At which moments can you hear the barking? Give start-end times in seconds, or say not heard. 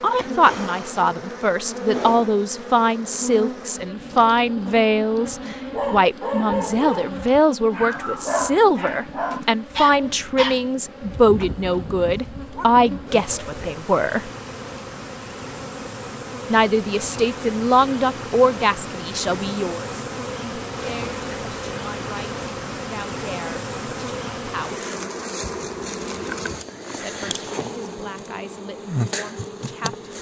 5.7-13.8.